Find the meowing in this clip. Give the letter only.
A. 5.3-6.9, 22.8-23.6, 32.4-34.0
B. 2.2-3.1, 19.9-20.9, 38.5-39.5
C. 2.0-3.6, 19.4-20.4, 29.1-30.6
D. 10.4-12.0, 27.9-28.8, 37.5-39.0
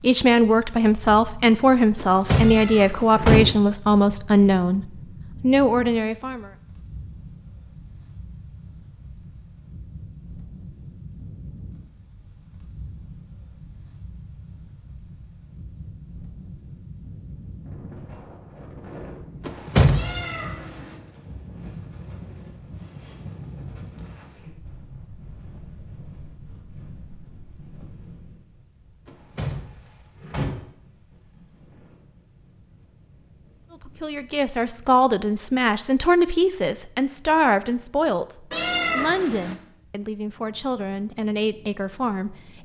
B.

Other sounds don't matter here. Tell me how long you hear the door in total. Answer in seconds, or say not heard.
4 s.